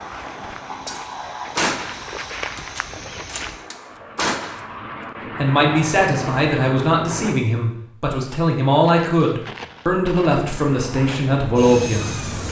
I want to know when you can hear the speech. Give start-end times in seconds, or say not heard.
5.3-12.3.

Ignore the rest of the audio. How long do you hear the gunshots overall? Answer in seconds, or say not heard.
4 s.